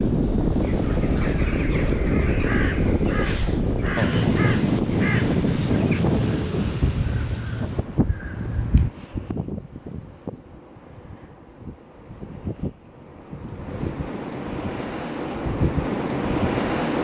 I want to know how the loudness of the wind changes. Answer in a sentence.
The loudness of the wind goes down, then up.